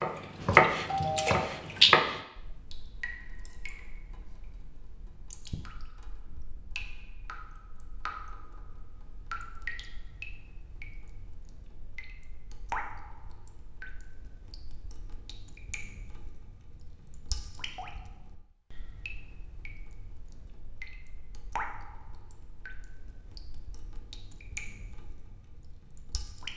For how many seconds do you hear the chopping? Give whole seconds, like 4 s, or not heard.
2 s.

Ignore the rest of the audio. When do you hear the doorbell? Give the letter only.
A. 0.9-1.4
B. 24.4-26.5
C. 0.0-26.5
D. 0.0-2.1
A.